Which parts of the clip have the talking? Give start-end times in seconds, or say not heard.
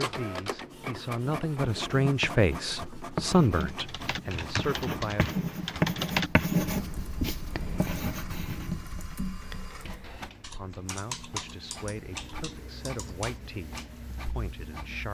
0.0-5.4, 10.5-15.1.